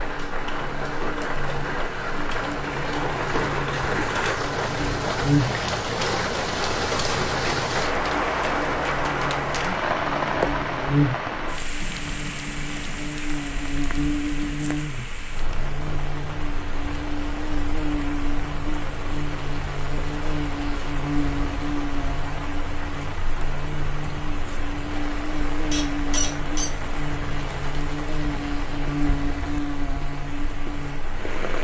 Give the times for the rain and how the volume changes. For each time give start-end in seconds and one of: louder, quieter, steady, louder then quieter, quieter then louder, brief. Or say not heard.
0.0-31.6 quieter.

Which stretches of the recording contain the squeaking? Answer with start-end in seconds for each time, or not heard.
25.7-26.7.